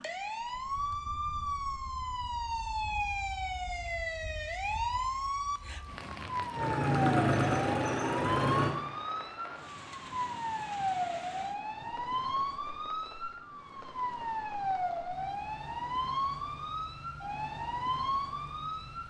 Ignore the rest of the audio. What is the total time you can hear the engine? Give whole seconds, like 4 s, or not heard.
2 s.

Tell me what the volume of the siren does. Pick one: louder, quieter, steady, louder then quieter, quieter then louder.
steady.